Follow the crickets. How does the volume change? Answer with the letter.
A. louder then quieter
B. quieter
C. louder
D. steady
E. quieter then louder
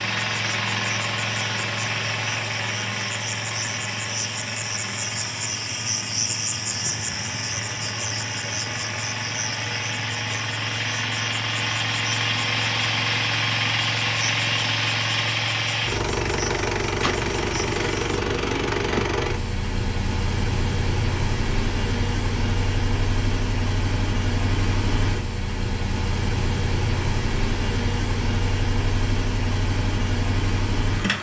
A.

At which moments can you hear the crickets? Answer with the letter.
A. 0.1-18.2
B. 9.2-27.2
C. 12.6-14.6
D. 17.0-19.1
A.